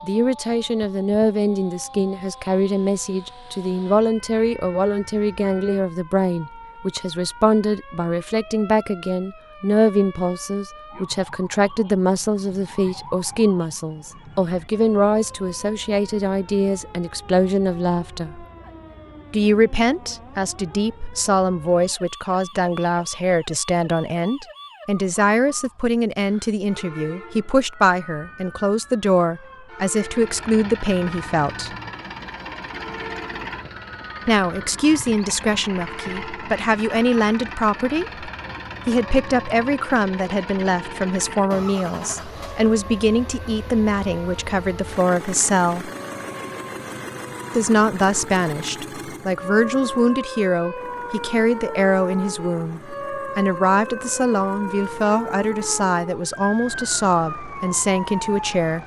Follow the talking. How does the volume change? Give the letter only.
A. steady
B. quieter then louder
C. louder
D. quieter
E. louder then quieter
A.